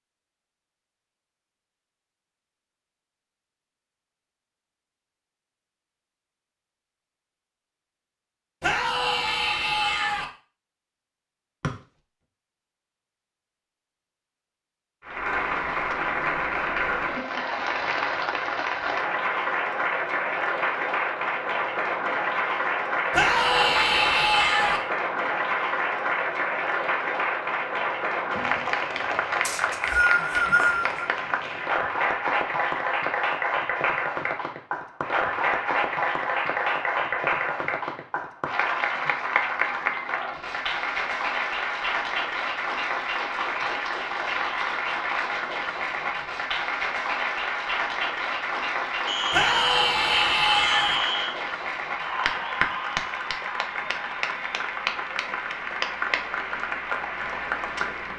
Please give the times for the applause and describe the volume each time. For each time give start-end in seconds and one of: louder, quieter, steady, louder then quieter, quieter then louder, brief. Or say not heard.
15.1-58.1 steady.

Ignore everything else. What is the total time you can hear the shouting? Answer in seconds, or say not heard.
5 s.